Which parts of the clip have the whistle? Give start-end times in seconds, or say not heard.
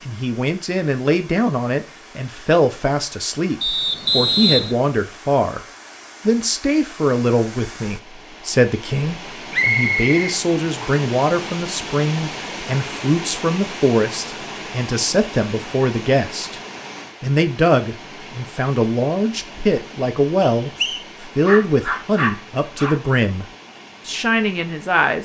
3.6-4.8, 9.5-11.1, 20.4-21.1.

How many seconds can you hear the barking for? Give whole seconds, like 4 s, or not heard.
2 s.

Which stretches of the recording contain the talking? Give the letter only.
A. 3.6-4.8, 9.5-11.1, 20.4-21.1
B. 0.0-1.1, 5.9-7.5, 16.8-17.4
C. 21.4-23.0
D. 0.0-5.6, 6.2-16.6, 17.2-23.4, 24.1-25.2
D.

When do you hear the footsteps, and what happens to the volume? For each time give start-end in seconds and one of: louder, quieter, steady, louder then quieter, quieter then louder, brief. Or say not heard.
not heard.